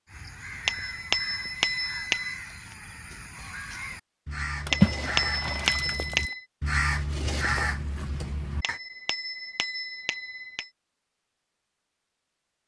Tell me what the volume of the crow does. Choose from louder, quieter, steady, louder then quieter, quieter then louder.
louder.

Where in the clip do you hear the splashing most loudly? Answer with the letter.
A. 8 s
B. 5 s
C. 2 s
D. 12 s
B.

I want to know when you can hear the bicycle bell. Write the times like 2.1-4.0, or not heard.
0.7-2.4, 4.7-6.5, 8.6-10.7.